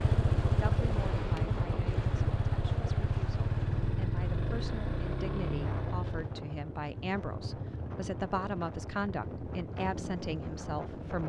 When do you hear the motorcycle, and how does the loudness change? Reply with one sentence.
You can hear the motorcycle from 0.0 to 11.2 s, getting quieter.